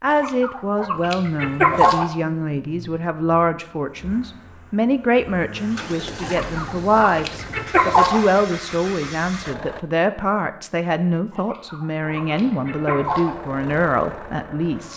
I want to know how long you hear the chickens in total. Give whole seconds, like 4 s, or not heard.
6 s.